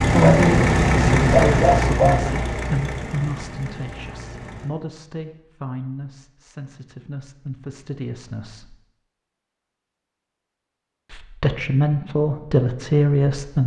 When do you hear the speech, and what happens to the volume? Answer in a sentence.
The speech can be heard from 0.0 to 8.8 s, getting quieter; and briefly from 11.1 to 13.6 s.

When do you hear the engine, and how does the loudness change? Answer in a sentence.
The engine can be heard from 0.0 to 4.7 s, getting quieter.